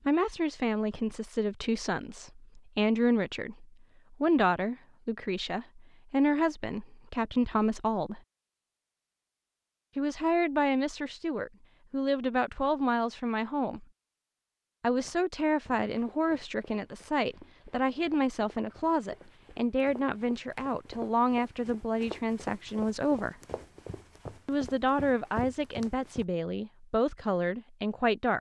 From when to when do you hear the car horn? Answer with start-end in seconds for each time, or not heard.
not heard.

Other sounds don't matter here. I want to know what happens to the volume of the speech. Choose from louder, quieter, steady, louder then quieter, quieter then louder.
steady.